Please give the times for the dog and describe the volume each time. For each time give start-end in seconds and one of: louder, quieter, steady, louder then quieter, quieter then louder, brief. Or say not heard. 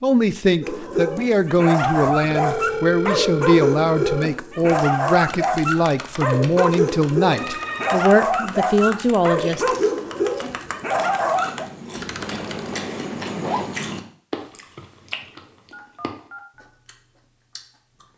0.6-11.7 steady.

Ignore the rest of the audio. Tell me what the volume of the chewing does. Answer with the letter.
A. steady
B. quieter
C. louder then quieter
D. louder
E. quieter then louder
C.